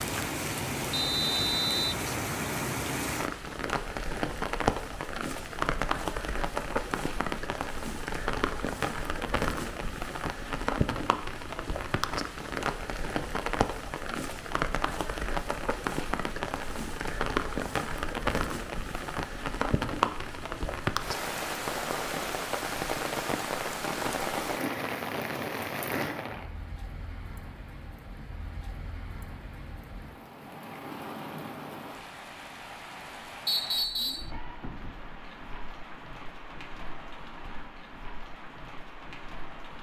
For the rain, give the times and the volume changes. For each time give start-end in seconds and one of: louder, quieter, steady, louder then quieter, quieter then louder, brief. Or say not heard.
0.0-39.7 quieter.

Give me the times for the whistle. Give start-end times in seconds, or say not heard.
0.9-2.0, 33.5-34.3.